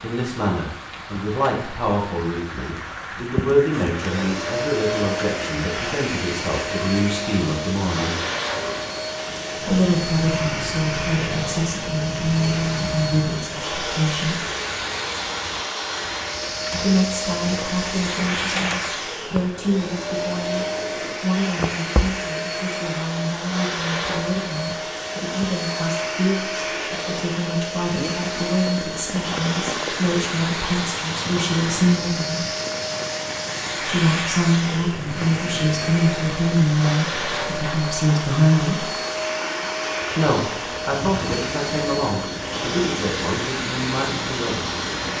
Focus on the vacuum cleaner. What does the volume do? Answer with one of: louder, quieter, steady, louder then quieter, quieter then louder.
steady.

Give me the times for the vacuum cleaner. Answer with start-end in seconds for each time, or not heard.
3.7-45.1.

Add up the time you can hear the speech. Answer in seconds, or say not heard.
38 s.